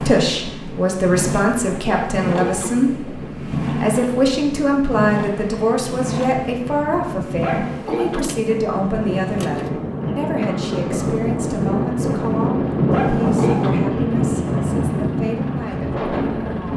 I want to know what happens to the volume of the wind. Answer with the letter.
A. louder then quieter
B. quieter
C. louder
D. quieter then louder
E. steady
C.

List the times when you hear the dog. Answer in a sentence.
The dog can be heard from 1.9 to 2.7 s, from 7.4 to 8.2 s and from 12.9 to 13.7 s.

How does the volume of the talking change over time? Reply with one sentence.
The loudness of the talking goes down.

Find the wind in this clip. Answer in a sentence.
The wind can be heard from 0.2 to 16.7 s.